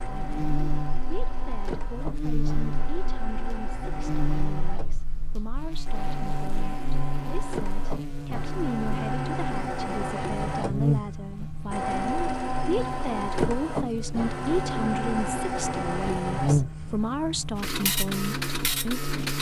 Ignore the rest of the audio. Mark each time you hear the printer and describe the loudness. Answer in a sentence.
You can hear the printer from 0.0 to 19.3 s, getting louder.